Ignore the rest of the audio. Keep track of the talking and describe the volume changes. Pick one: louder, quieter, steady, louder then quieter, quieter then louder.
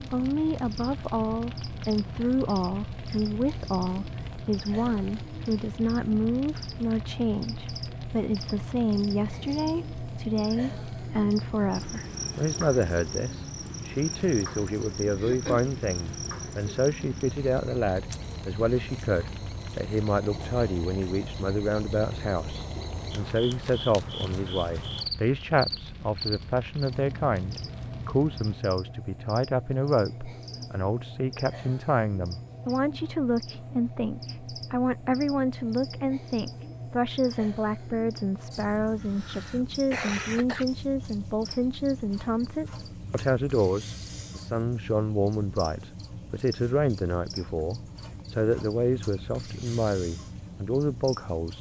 steady.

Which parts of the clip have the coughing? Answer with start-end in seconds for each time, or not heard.
15.2-15.8, 39.0-40.6.